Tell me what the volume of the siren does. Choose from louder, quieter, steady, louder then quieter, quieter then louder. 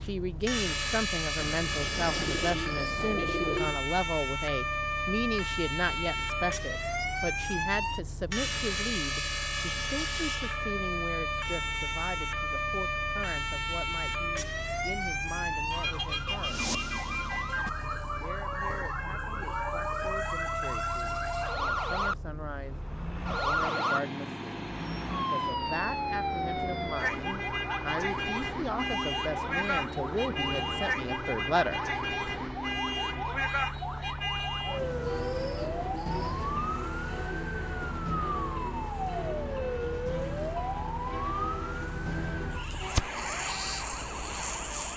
steady.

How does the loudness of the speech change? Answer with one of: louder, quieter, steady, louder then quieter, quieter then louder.
quieter then louder.